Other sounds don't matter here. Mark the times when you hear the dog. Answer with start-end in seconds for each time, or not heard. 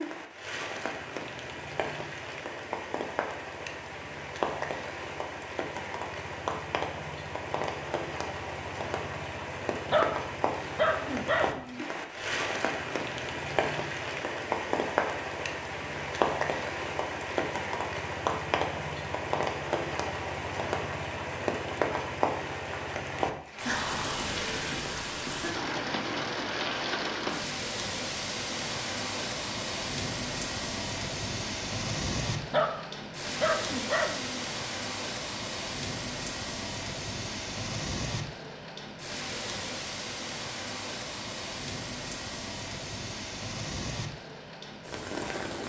9.8-11.8, 32.5-34.4.